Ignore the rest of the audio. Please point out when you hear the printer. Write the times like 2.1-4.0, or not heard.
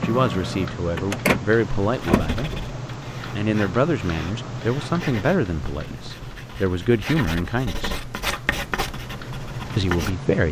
0.0-2.5.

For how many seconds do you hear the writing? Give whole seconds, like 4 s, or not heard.
8 s.